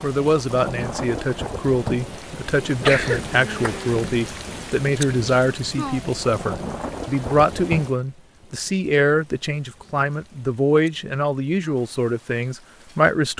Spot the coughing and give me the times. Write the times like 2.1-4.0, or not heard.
2.8-4.0.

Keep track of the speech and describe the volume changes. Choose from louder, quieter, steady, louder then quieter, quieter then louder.
steady.